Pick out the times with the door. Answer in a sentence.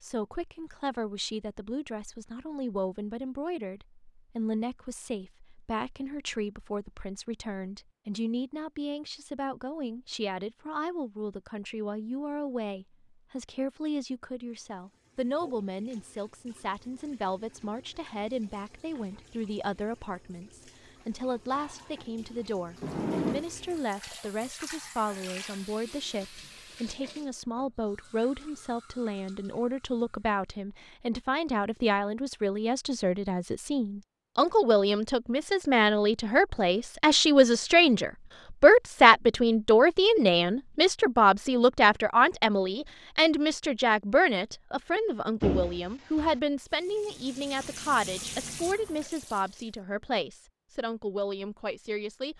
The door can be heard from 22.8 to 23.4 s and from 45.4 to 46.4 s.